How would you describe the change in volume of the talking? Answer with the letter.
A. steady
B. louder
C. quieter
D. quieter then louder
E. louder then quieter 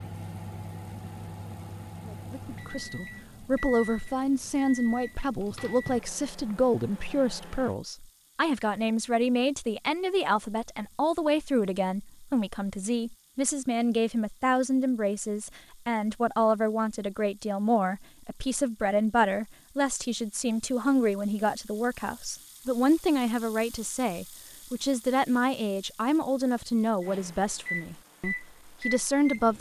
A.